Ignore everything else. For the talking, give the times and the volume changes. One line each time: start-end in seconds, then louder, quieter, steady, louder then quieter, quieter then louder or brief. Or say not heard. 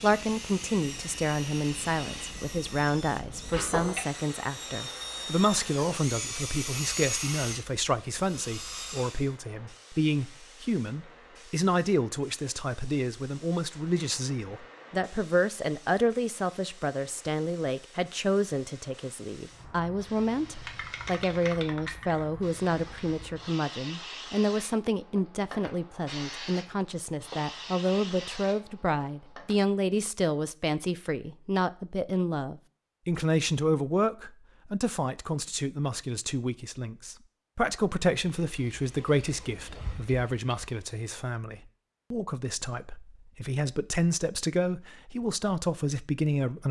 0.0-46.6 steady.